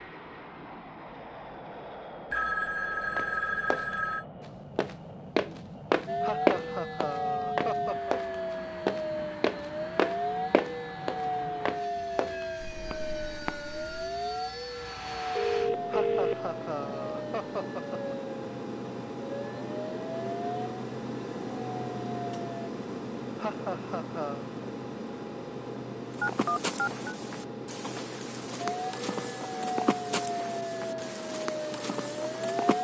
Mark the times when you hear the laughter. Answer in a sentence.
You can hear the laughter from 6.2 to 8.2 s, from 15.9 to 18.1 s and from 23.4 to 24.4 s.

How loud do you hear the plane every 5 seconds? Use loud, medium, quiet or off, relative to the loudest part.
medium, medium, medium, loud, loud, loud, medium.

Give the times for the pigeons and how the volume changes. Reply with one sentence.
You can't hear the pigeons here.